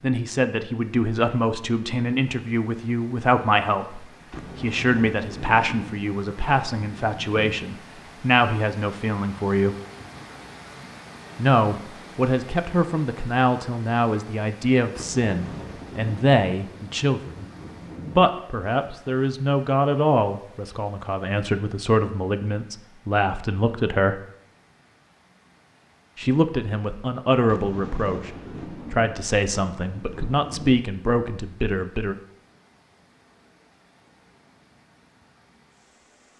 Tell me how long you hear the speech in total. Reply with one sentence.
You can hear the speech for 28 seconds altogether.